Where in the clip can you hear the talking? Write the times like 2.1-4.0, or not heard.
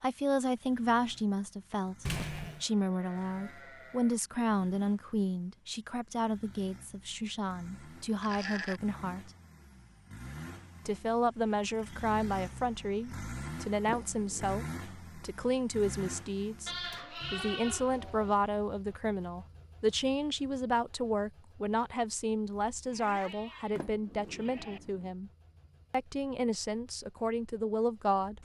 0.0-9.3, 10.8-25.3, 25.9-28.4.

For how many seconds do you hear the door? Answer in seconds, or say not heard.
3 s.